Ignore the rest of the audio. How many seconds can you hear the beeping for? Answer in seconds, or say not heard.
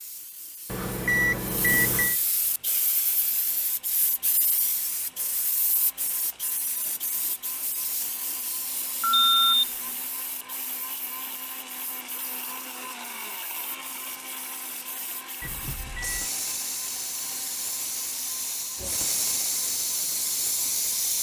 3 s.